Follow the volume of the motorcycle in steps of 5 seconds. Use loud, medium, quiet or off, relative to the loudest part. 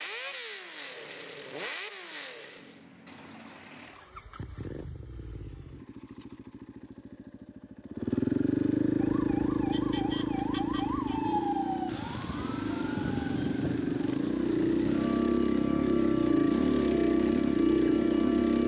quiet, medium, medium, loud.